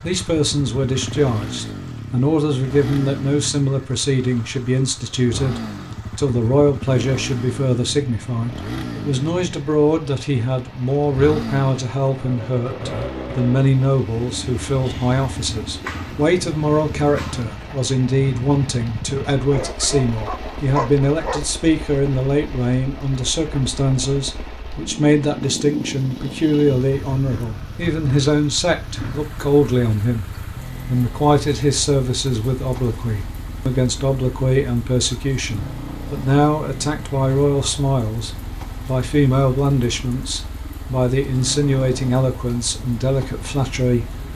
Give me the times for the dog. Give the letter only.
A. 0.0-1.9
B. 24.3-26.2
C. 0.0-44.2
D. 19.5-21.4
D.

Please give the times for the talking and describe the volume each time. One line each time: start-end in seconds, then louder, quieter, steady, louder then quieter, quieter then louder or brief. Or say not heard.
0.0-44.2 steady.